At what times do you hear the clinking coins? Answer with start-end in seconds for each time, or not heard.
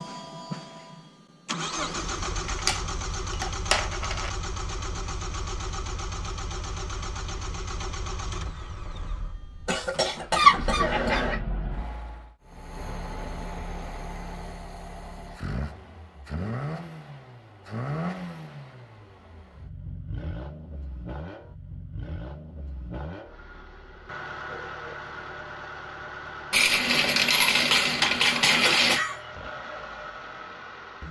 2.5-4.3, 26.5-29.1.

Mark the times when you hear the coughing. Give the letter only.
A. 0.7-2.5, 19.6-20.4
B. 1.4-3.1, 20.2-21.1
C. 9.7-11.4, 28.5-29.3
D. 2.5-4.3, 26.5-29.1
C.